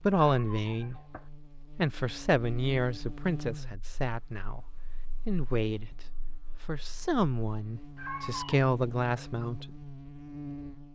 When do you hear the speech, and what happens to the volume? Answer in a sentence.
The speech can be heard briefly from 0.0 to 0.9 s; and from 1.8 to 9.8 s, getting quieter then louder.